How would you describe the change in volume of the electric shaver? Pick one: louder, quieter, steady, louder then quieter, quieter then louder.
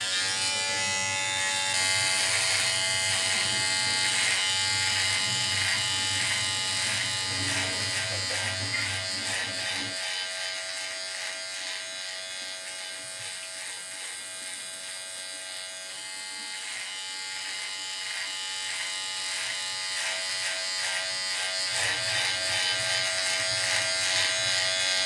quieter then louder.